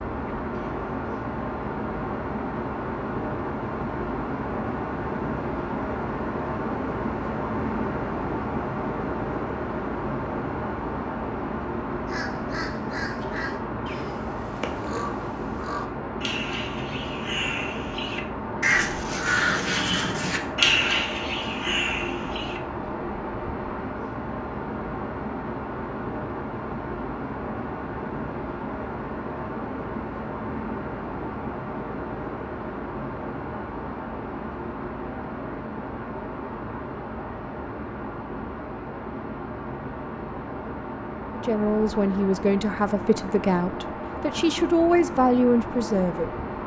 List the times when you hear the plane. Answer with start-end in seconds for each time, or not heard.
0.0-46.6.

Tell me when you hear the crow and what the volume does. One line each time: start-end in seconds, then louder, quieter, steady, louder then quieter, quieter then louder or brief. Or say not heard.
11.9-22.6 louder.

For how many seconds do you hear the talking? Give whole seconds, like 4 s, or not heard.
5 s.